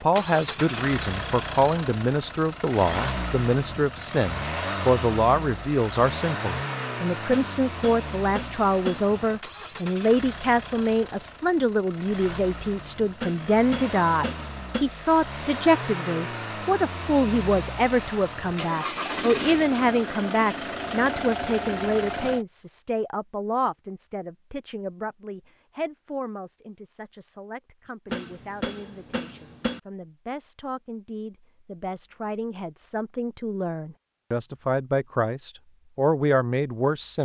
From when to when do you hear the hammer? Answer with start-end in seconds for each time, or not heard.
7.3-9.1, 13.2-14.8, 28.1-29.8.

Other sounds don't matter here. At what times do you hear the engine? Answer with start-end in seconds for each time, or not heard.
0.0-22.4.